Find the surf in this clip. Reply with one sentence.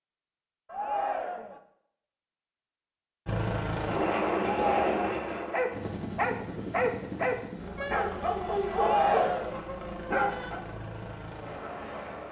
The surf can't be heard in this clip.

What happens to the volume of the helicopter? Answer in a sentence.
The volume of the helicopter goes down.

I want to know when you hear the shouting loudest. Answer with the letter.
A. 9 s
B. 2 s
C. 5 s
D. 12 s
A.